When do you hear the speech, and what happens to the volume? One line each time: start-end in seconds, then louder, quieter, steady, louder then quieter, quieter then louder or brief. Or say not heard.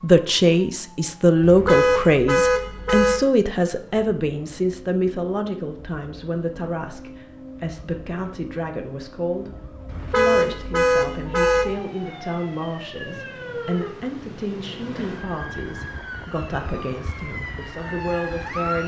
0.0-18.8 quieter.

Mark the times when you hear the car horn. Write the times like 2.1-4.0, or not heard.
1.4-3.2, 9.8-11.8.